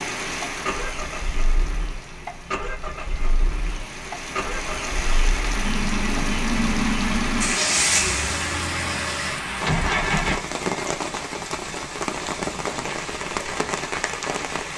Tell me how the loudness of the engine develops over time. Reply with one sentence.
The loudness of the engine goes up, then down.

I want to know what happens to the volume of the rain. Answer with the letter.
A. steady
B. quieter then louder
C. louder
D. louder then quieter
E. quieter
C.